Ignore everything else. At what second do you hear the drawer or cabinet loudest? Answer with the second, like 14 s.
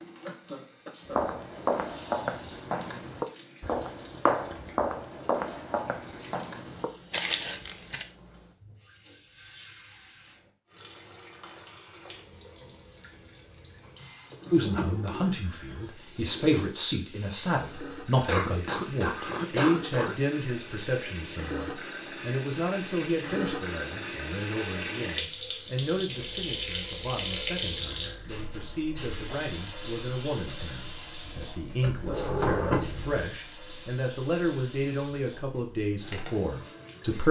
33 s.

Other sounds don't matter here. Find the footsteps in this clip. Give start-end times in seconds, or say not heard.
1.1-8.1.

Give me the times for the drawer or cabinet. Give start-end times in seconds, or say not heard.
14.3-16.7, 31.9-33.2.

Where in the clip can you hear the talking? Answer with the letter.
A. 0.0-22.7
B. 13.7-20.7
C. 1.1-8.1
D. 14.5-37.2
D.